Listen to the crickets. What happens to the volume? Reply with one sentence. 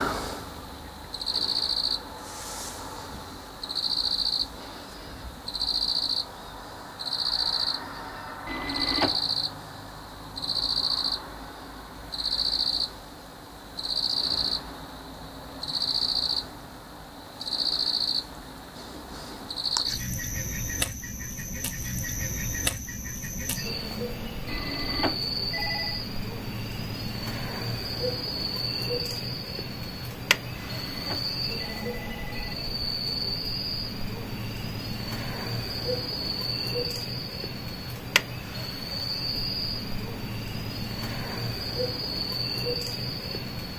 The loudness of the crickets stays about the same.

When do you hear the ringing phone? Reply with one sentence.
The ringing phone can be heard from 8.4 to 9.2 s, from 24.4 to 26.0 s and from 30.6 to 32.5 s.